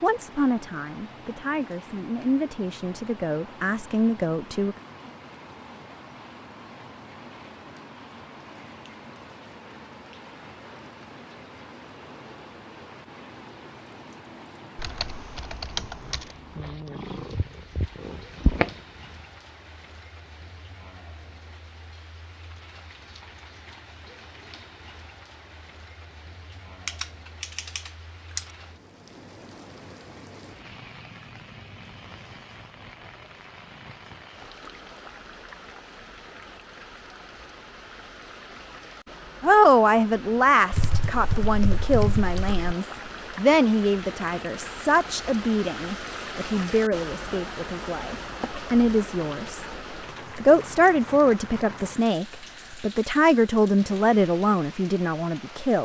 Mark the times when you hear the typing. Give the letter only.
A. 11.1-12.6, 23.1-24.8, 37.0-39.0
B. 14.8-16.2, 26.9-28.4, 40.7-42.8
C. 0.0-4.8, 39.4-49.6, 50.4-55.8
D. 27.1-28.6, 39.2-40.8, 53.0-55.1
B.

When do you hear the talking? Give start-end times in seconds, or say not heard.
0.0-4.8, 39.4-49.6, 50.4-55.8.